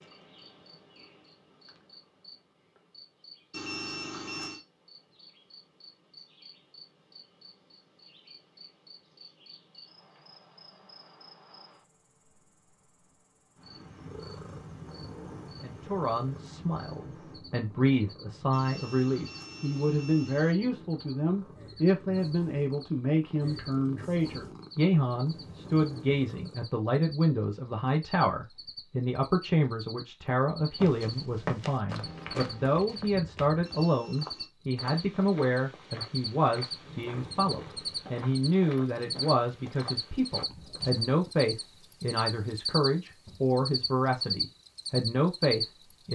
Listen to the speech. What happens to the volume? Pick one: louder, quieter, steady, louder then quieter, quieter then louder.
steady.